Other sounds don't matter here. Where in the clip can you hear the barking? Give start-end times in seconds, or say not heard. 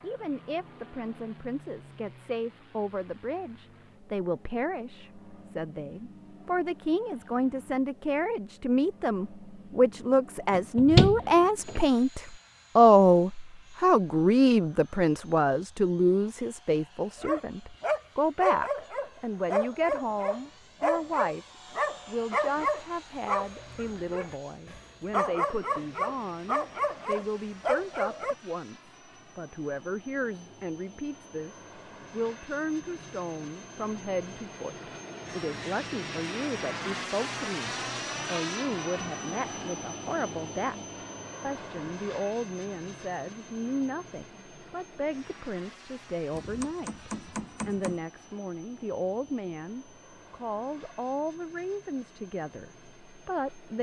17.2-28.4.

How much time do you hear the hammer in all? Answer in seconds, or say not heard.
2 s.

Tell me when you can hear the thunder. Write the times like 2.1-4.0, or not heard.
not heard.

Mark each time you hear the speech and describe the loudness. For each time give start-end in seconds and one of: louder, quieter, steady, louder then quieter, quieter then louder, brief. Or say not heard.
0.0-21.4 louder then quieter
22.1-40.8 steady
41.4-53.7 steady.